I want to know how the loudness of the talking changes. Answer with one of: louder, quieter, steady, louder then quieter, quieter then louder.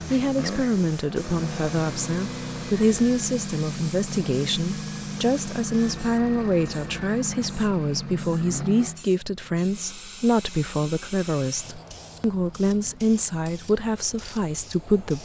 steady.